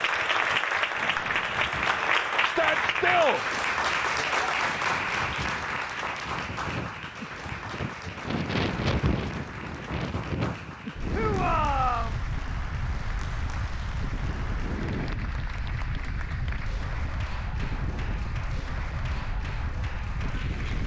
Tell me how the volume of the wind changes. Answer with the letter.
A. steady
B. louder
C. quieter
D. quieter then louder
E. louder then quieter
E.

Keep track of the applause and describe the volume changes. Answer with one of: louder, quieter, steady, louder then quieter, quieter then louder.
quieter.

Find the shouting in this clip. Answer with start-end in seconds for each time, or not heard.
2.4-3.4, 11.1-12.2.